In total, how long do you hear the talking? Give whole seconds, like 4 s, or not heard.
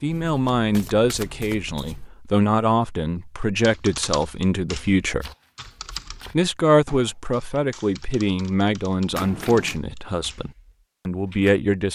11 s.